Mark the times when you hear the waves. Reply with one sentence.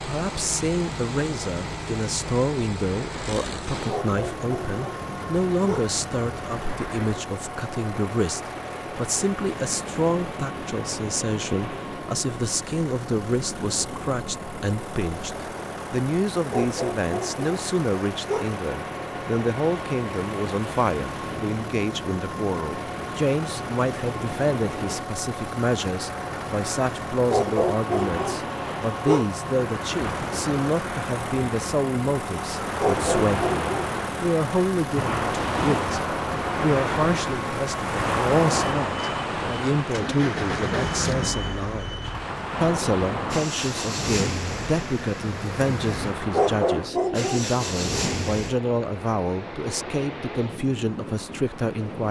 The waves can be heard from 0.0 to 52.0 s.